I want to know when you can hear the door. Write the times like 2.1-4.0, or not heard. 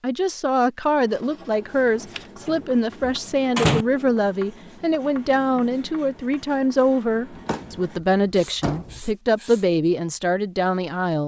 1.9-3.9, 7.5-9.0.